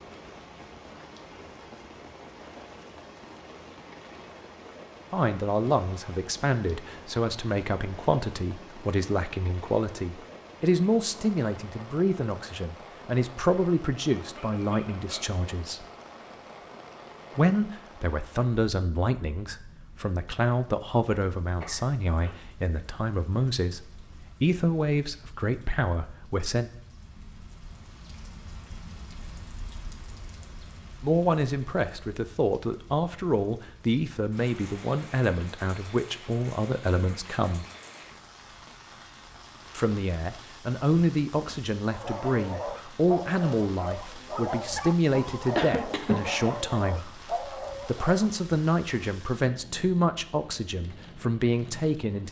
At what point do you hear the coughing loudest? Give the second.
46 s.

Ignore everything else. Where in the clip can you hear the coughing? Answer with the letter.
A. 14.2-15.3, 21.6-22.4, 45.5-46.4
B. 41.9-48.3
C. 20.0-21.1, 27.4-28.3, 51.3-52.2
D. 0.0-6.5
A.